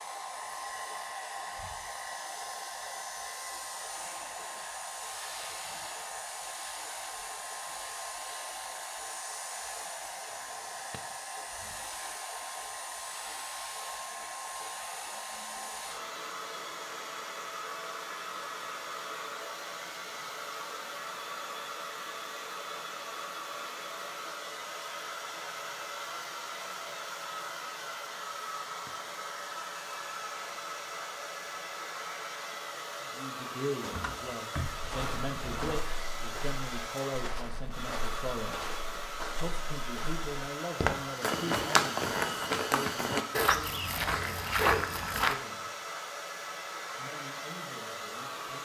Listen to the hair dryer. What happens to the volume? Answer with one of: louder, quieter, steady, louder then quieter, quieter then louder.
steady.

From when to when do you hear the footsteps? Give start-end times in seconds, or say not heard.
34.7-45.4.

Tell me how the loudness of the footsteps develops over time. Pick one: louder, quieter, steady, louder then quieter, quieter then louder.
louder.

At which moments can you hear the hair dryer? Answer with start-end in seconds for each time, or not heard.
0.0-48.6.